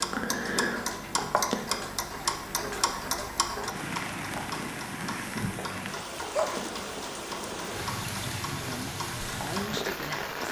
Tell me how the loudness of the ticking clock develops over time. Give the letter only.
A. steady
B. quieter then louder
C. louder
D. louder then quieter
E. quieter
E.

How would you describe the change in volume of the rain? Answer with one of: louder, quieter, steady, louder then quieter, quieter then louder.
louder.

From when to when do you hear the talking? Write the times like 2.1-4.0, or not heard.
8.6-10.4.